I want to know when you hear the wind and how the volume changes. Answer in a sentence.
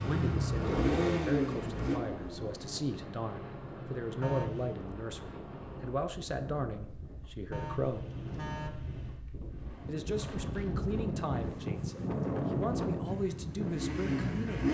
The wind can be heard from 0.1 to 14.6 s, getting louder.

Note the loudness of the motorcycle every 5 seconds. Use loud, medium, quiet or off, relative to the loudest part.
loud, off, loud.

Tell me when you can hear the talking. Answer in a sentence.
The talking can be heard from 0.0 to 8.1 s and from 9.8 to 14.6 s.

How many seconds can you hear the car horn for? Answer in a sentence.
The car horn can be heard for 2 seconds in total.